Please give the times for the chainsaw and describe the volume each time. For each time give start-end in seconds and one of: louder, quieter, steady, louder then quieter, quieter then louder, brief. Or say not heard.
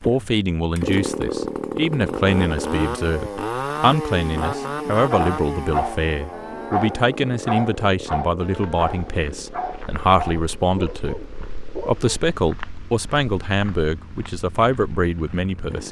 0.0-15.8 quieter.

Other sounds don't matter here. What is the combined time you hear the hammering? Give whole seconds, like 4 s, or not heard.
not heard.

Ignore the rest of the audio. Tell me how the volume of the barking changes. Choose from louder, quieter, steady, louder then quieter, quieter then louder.
quieter.